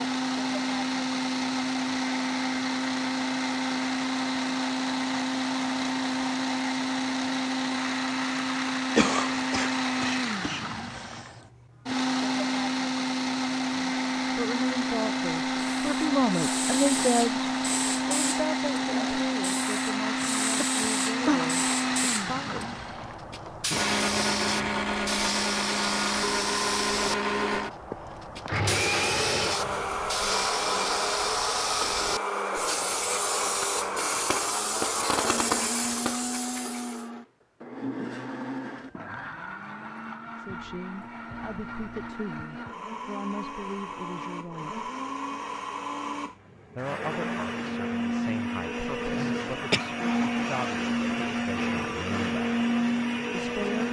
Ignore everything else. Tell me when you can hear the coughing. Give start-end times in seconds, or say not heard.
8.9-11.2, 20.2-21.6, 49.0-49.9.